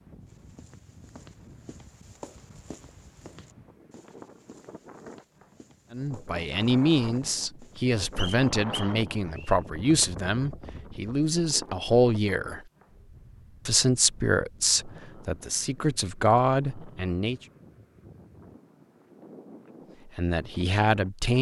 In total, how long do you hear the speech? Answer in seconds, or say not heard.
12 s.